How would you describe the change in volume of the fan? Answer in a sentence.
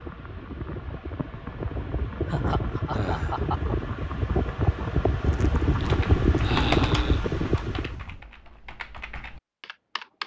The loudness of the fan goes up.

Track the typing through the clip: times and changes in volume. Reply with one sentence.
You can hear the typing from 5.8 to 10.2 s, getting quieter.